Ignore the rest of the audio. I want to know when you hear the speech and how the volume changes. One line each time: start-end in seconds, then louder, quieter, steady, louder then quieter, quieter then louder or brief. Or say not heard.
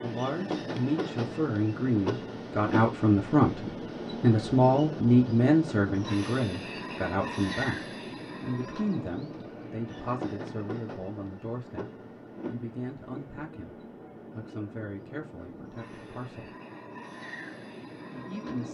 0.0-16.6 quieter
18.1-18.6 brief.